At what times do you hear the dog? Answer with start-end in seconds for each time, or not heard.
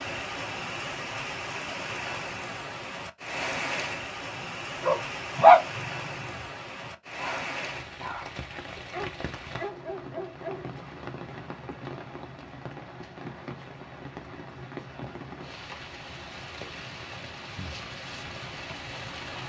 4.3-10.7.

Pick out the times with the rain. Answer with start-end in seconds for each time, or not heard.
0.0-19.4.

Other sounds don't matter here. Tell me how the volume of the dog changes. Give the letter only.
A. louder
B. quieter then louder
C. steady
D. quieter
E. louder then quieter
B.